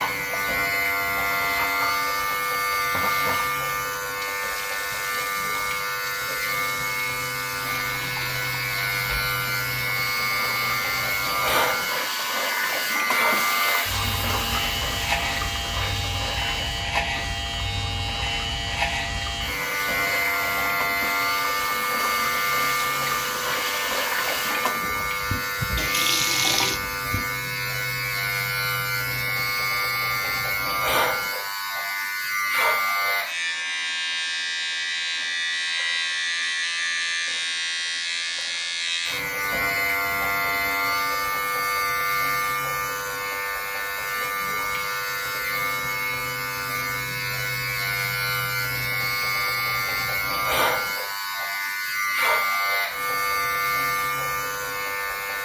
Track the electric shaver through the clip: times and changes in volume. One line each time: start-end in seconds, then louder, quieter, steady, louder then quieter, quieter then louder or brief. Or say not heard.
0.0-55.4 steady.